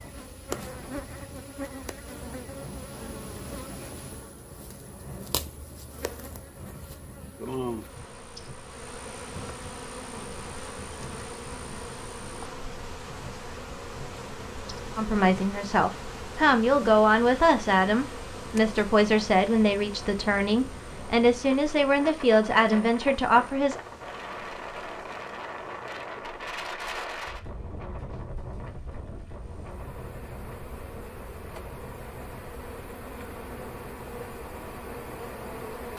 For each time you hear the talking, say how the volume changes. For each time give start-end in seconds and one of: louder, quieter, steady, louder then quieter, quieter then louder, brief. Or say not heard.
14.9-23.8 steady.